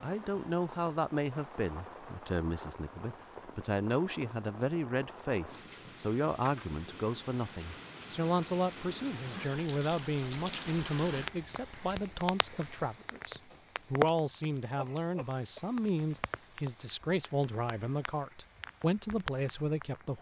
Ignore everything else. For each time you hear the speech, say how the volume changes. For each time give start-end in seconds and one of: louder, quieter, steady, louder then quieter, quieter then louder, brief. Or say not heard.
0.0-20.1 steady.